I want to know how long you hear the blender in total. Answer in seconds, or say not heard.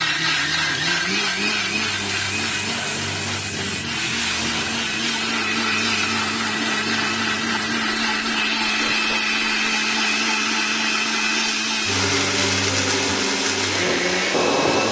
15 s.